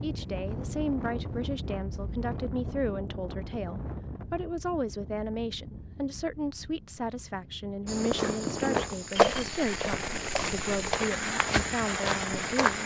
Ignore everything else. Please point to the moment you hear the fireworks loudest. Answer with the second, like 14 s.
9 s.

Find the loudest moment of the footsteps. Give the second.
9 s.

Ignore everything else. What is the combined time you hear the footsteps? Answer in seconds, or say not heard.
5 s.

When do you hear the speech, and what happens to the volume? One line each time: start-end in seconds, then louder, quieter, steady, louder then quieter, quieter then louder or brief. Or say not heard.
0.0-12.8 steady.